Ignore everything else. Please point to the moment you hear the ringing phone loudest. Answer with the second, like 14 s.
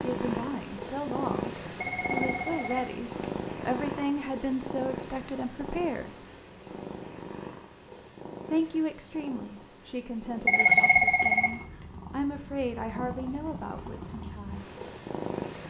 11 s.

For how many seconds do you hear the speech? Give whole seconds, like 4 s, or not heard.
12 s.